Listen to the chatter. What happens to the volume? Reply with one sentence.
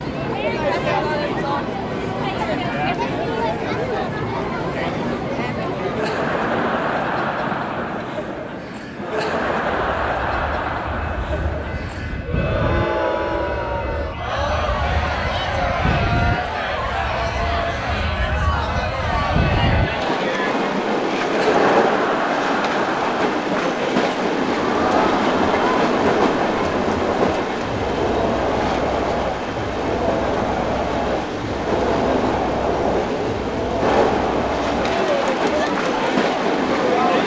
The loudness of the chatter stays about the same.